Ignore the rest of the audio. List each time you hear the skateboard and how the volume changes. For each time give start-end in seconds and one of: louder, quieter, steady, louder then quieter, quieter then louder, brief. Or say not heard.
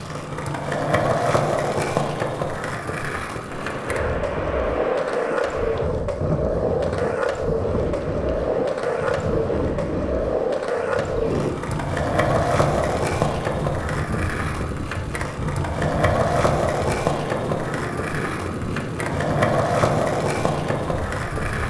0.0-21.6 steady.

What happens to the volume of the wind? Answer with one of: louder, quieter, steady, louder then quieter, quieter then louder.
steady.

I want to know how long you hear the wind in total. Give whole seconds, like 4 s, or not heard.
18 s.